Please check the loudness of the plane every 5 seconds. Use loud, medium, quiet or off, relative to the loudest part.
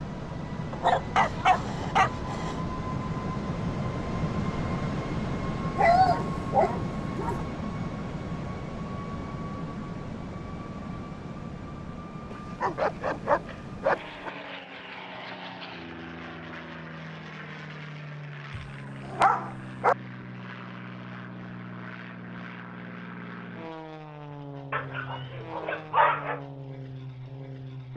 loud, loud, medium, medium, medium, medium.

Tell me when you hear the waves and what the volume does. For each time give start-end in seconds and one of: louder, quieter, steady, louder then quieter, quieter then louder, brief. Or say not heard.
not heard.